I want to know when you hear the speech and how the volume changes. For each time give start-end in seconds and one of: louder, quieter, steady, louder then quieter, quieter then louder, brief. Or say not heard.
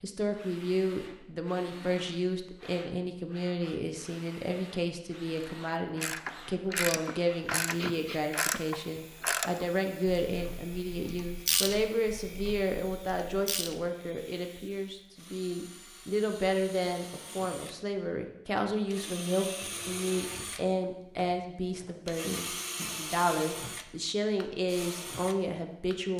0.0-26.1 steady.